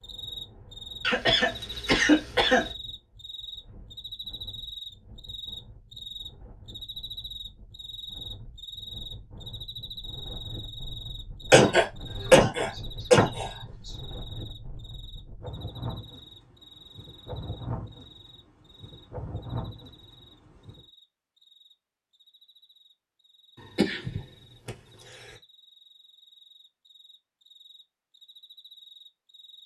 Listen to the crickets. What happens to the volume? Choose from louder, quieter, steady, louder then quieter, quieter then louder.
quieter.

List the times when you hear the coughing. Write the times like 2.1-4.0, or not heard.
1.0-2.6, 11.5-13.9, 23.8-24.7.